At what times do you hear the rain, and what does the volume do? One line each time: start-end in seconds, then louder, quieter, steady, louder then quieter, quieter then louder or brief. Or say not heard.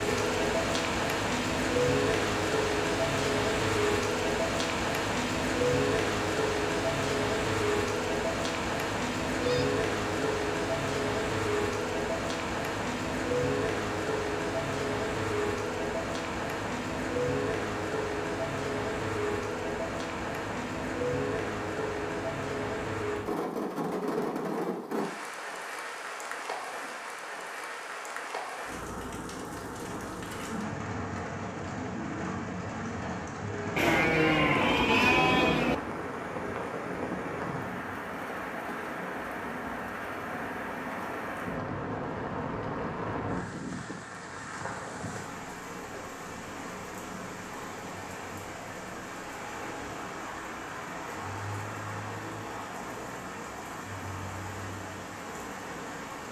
0.0-56.2 quieter.